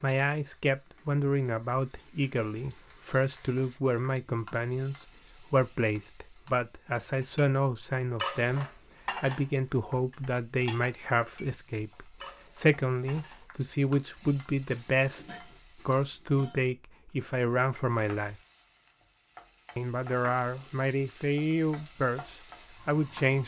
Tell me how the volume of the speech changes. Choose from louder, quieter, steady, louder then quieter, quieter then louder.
steady.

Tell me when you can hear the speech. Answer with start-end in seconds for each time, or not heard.
0.0-18.4, 19.8-23.4.